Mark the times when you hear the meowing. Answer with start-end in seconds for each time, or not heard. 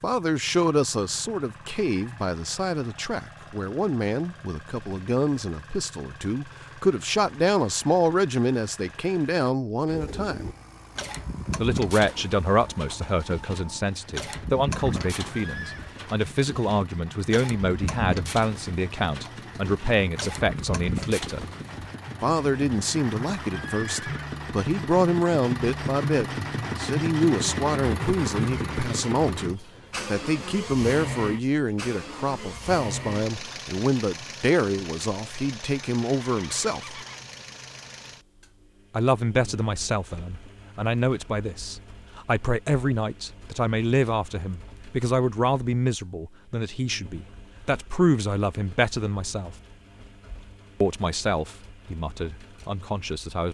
not heard.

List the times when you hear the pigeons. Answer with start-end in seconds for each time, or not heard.
9.9-21.9.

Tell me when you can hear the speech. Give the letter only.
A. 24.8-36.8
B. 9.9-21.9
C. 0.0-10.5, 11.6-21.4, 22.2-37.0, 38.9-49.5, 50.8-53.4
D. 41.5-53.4
C.